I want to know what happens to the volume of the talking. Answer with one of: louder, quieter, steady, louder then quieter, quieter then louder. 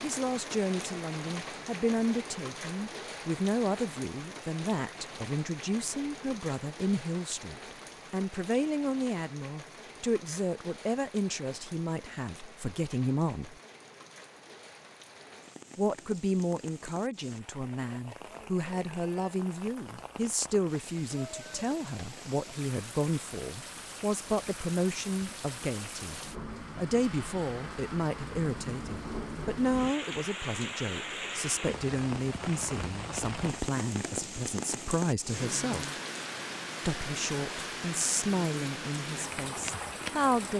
steady.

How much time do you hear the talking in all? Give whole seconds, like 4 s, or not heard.
37 s.